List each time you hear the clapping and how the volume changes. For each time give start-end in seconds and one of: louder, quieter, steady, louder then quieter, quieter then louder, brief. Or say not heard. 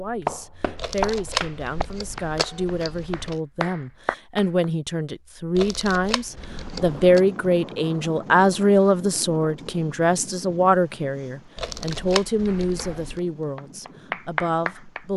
0.0-4.7 quieter then louder
12.4-15.1 brief.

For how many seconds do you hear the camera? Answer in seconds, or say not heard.
6 s.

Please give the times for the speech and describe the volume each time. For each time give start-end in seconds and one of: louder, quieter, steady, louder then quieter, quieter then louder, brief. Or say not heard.
0.0-15.1 louder then quieter.